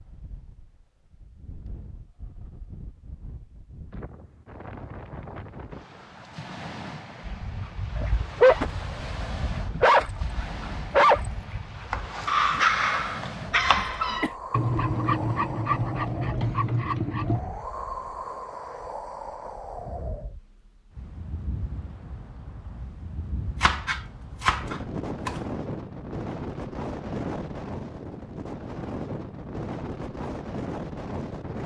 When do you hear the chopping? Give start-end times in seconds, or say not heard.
11.9-13.9, 23.6-25.4.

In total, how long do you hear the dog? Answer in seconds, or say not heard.
10 s.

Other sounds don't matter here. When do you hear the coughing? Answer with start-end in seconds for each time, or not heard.
13.8-14.3.